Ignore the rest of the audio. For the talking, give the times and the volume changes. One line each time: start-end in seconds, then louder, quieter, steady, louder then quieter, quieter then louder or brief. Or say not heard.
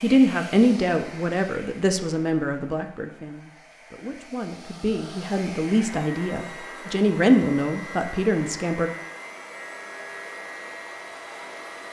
0.0-8.9 quieter then louder.